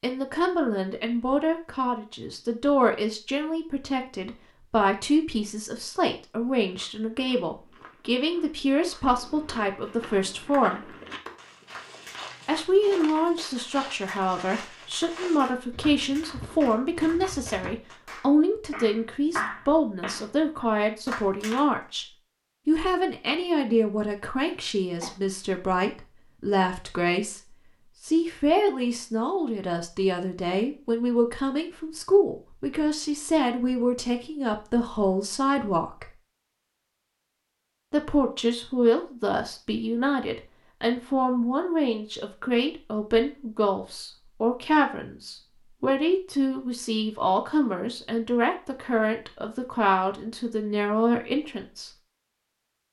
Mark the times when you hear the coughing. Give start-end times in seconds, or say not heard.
24.4-25.2.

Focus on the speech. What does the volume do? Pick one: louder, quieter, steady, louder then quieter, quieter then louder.
steady.